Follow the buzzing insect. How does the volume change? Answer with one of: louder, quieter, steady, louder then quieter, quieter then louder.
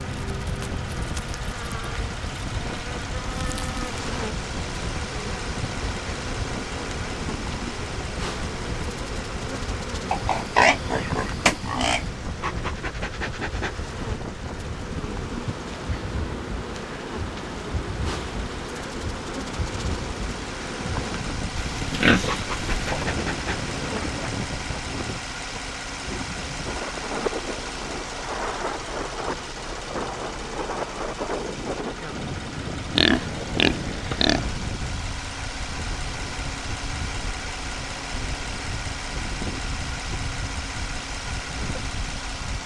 steady.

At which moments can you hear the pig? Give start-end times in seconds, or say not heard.
10.1-12.1, 21.8-23.1, 33.0-34.5.